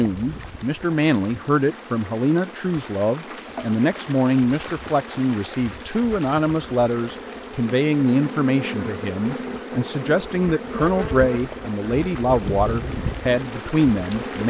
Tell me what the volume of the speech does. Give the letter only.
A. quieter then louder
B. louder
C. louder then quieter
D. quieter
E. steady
E.